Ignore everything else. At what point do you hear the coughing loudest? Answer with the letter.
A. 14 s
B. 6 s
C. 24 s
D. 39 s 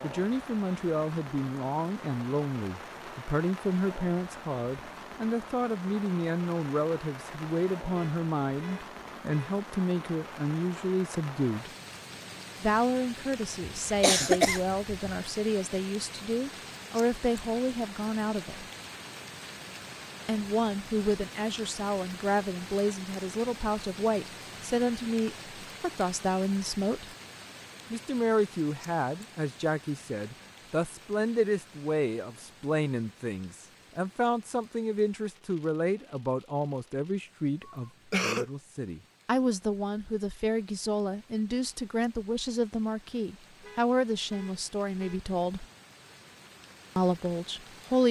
A.